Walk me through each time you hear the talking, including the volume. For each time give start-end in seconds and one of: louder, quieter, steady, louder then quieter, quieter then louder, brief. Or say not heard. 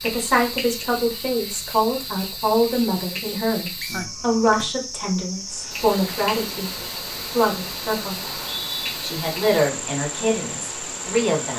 0.0-8.4 steady
9.0-11.5 brief.